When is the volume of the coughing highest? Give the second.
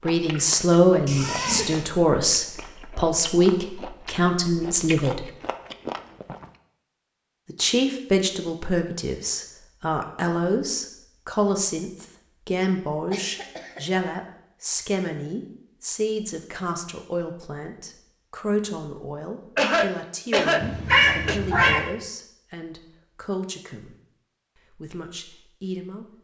20 s.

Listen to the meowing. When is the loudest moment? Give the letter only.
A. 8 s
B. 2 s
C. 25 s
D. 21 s
D.